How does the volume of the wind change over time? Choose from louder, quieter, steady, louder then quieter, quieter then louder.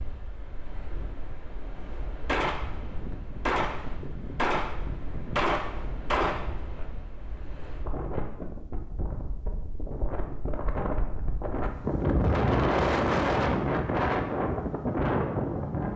louder.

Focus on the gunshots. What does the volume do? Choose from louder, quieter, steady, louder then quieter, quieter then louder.
louder.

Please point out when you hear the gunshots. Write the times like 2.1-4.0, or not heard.
2.2-6.8.